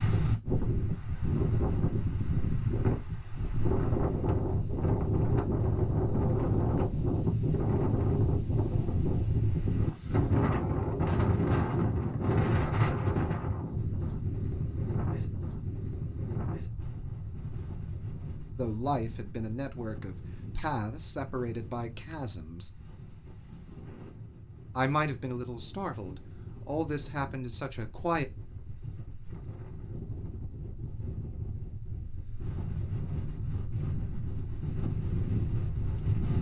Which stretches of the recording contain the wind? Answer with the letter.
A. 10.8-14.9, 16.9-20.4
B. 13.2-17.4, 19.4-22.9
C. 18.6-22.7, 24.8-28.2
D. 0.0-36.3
D.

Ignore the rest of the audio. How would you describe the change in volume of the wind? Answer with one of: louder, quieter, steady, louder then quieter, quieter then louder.
quieter then louder.